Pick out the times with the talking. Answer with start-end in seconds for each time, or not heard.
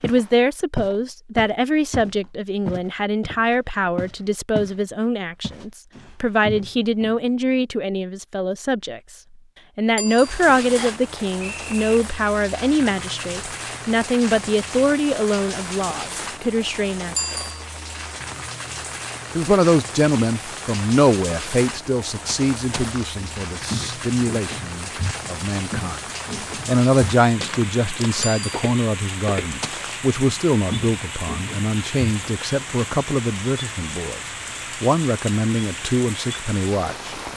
0.0-9.0, 9.8-17.1, 19.4-26.1, 26.6-37.1.